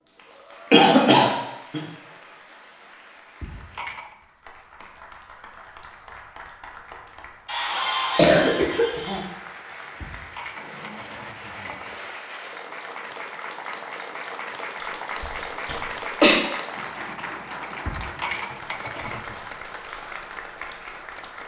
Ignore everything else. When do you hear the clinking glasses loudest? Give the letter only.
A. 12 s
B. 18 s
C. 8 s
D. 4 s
B.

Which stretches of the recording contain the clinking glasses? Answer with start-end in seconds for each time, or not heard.
3.4-4.2, 10.0-12.0, 17.9-19.4.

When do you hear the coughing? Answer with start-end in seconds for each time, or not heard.
0.7-1.8, 7.5-9.2, 14.8-16.4.